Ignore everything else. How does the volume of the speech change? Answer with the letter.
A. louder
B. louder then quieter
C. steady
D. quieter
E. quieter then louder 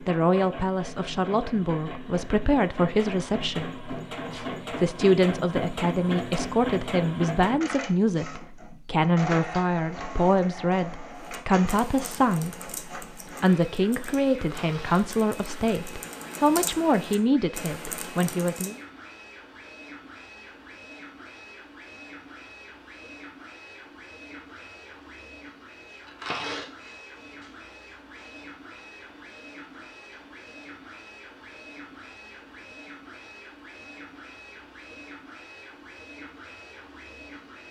C.